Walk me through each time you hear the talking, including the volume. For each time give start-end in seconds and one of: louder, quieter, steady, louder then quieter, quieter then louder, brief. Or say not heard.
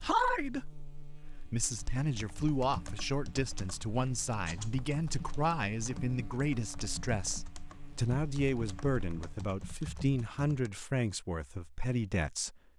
0.0-12.6 steady.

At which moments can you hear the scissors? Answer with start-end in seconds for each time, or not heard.
not heard.